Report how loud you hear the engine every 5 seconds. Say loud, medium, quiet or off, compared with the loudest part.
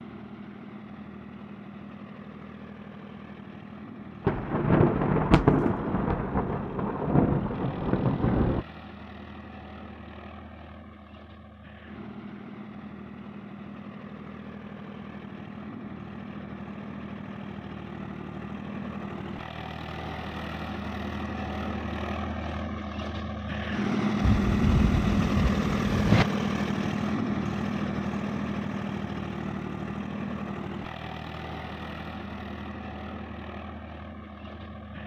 quiet, quiet, quiet, medium, loud, loud, medium.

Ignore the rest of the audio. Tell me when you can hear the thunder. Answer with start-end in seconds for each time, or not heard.
4.2-8.7, 24.2-26.2.